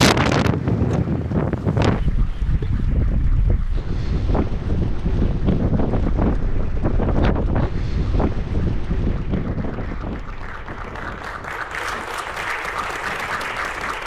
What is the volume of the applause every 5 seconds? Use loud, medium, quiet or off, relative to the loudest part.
quiet, quiet, loud.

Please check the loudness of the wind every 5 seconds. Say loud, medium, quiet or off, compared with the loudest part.
loud, loud, quiet.